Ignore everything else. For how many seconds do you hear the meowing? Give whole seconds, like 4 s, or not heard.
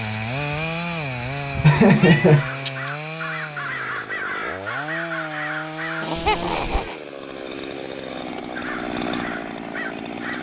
2 s.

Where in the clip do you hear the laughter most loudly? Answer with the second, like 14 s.
2 s.